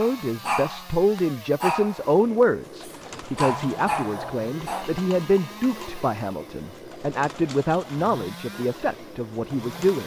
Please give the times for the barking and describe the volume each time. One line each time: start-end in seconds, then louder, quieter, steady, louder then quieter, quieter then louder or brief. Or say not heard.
0.0-4.9 quieter then louder.